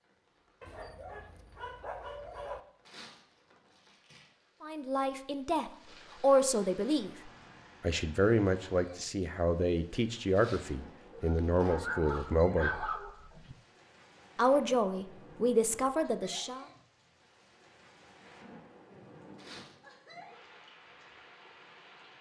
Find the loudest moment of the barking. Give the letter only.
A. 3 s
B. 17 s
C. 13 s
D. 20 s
C.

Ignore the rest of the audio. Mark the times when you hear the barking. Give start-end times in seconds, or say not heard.
0.6-2.6, 11.1-13.6.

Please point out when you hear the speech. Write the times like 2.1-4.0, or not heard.
4.6-12.7, 14.3-16.6.